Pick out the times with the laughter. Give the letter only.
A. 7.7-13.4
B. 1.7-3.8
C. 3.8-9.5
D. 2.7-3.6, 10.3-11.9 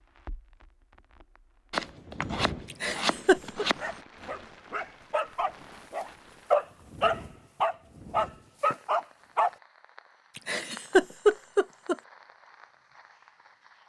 D.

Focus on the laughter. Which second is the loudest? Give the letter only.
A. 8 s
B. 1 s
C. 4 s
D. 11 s
D.